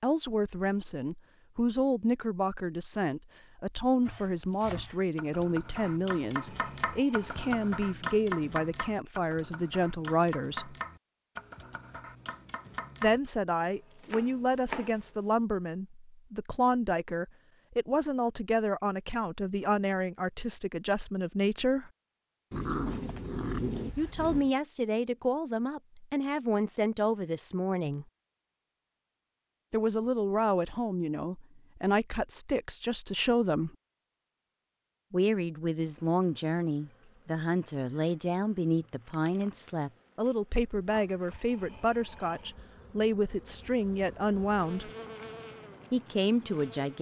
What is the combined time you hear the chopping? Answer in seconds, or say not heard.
11 s.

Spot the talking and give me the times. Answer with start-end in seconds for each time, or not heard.
0.0-10.8, 13.0-21.9, 23.9-28.1, 29.7-33.7, 35.1-44.9, 45.9-46.9.